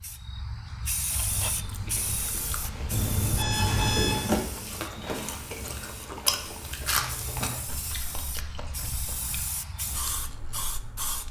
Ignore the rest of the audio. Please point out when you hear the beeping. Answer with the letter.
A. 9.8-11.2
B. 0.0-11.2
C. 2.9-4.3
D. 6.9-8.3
C.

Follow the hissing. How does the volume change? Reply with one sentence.
The loudness of the hissing goes down, then up.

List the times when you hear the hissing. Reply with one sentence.
You can hear the hissing from 0.0 to 11.2 s.